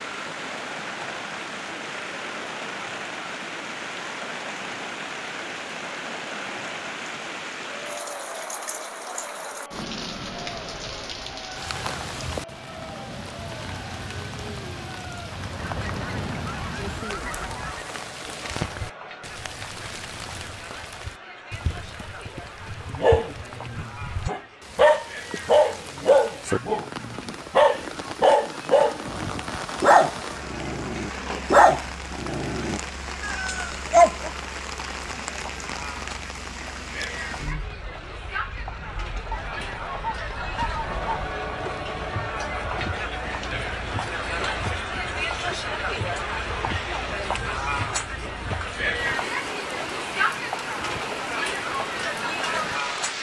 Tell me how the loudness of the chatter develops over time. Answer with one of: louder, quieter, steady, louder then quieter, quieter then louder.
louder.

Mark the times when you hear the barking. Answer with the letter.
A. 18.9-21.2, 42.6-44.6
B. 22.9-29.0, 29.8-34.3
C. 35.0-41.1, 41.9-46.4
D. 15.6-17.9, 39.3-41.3
B.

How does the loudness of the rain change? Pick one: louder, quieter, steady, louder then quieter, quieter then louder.
steady.